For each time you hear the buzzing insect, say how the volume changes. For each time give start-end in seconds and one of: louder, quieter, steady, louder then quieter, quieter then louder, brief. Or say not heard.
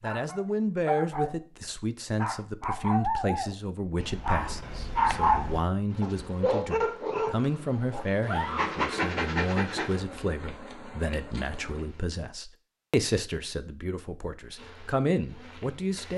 5.9-12.1 louder then quieter
14.6-16.1 brief.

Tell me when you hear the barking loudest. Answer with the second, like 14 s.
5 s.